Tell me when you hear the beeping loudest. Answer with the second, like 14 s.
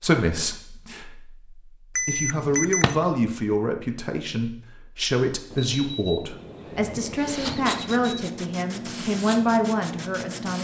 2 s.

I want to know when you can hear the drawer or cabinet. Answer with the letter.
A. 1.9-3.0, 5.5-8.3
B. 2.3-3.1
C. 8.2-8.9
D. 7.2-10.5
B.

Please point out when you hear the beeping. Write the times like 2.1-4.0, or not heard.
1.9-3.0, 5.5-8.3.